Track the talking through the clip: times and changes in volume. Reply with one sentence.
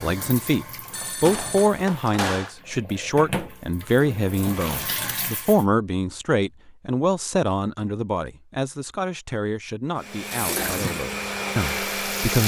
The talking can be heard from 0.0 to 12.4 s, getting quieter.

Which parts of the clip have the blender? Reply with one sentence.
The blender can be heard from 9.9 to 12.4 s.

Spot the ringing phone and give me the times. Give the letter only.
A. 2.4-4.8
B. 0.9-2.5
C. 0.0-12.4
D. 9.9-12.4
B.